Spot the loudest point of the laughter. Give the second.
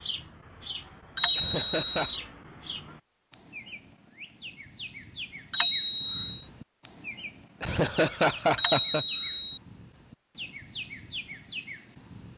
8 s.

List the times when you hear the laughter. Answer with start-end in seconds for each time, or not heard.
1.4-2.1, 7.6-9.1.